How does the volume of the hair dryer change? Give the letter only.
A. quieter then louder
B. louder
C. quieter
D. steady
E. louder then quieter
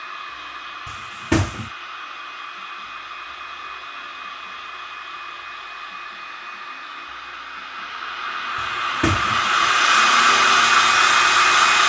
B.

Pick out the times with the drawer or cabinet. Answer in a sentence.
The drawer or cabinet can be heard from 0.8 to 1.7 s and from 8.6 to 9.7 s.